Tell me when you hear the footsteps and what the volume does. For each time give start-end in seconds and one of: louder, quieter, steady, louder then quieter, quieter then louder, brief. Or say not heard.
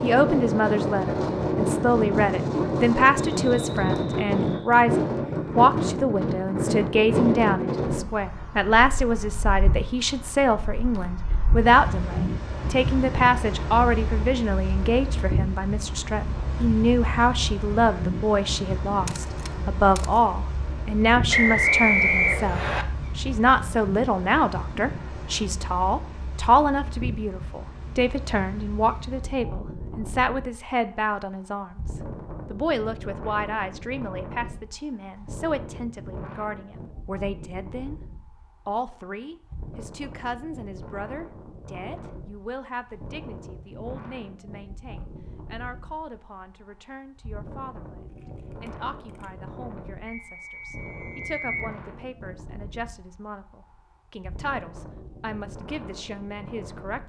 not heard.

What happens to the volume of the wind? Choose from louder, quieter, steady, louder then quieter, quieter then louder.
quieter.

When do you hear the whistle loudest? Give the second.
22 s.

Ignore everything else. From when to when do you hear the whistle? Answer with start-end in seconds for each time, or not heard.
3.4-4.7, 21.3-22.9, 50.0-51.8.